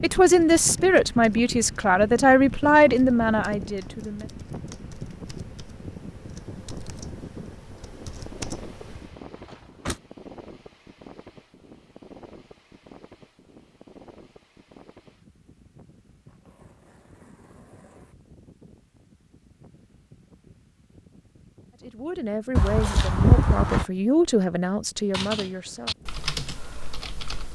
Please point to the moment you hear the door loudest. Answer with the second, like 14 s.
23 s.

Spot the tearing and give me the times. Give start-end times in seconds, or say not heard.
16.2-18.1.